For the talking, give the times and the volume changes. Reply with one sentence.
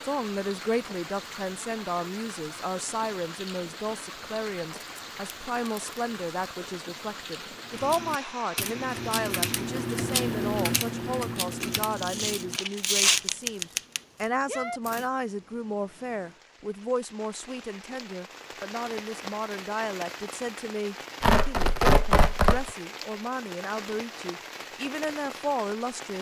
The talking can be heard from 0.0 to 26.1 s, at a steady volume.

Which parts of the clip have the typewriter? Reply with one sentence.
You can hear the typewriter from 7.6 to 15.1 s.